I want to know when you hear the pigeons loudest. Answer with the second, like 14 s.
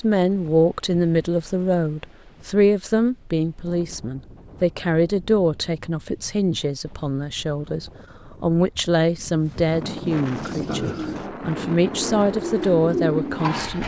13 s.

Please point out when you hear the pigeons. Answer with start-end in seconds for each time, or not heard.
10.1-13.8.